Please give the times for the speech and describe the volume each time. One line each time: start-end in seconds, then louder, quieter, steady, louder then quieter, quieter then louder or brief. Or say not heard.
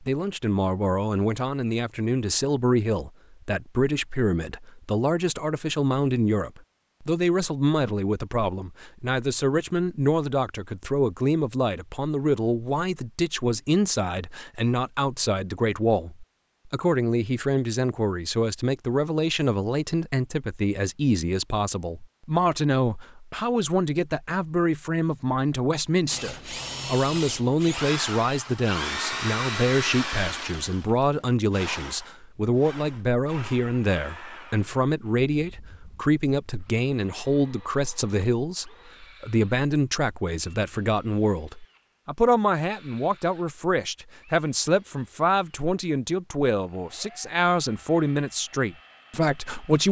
0.0-49.8 steady.